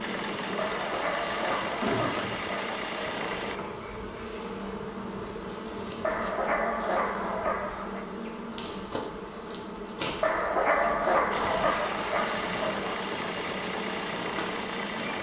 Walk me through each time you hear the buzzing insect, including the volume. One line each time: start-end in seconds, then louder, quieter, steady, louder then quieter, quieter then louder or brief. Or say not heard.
0.0-15.1 steady.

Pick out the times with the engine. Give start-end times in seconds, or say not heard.
0.0-3.6, 11.3-15.1.